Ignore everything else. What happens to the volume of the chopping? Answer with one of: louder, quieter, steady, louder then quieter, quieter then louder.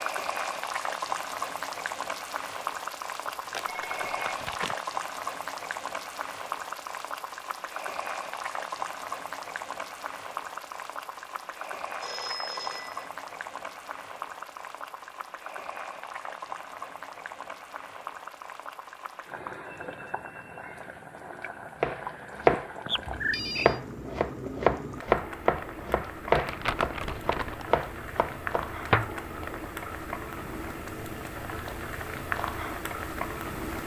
quieter.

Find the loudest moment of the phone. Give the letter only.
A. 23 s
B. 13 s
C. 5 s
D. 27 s
A.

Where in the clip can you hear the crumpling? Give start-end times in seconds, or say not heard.
3.2-4.8, 26.4-27.6.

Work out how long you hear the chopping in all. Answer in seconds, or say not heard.
7 s.